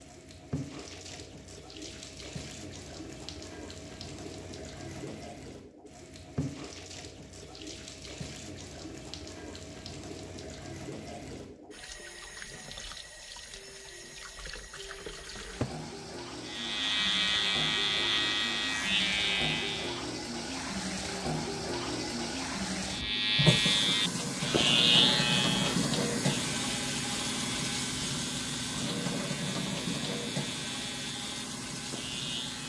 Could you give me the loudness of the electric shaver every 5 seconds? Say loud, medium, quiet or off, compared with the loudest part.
off, off, off, loud, loud, medium, quiet.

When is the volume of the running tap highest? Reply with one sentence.
The loudest moment of the running tap is at 26 seconds.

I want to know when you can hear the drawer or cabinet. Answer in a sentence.
The drawer or cabinet can be heard from 15.3 to 15.8 s.